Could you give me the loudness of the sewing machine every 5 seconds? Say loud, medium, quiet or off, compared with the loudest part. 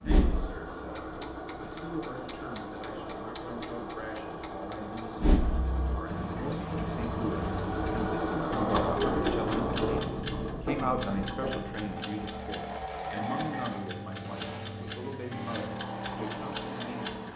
medium, loud, medium, medium.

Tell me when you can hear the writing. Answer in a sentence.
The writing can't be heard in this clip.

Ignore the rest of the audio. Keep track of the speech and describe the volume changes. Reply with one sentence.
The loudness of the speech goes up, then down.